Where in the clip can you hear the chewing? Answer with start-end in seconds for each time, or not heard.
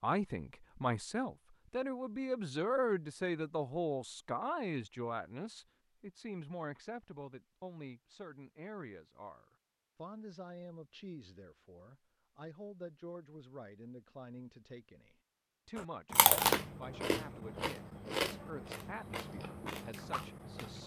15.8-20.8.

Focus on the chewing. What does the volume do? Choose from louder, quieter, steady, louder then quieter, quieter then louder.
quieter.